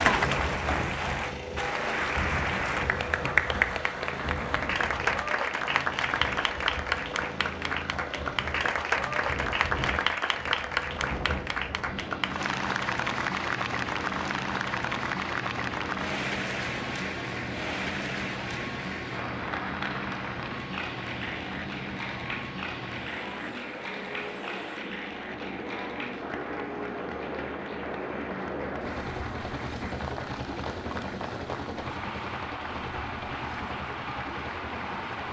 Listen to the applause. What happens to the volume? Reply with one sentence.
The volume of the applause goes down.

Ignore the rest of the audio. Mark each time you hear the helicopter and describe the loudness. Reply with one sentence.
You can hear the helicopter from 0.0 to 35.2 s, at a steady volume.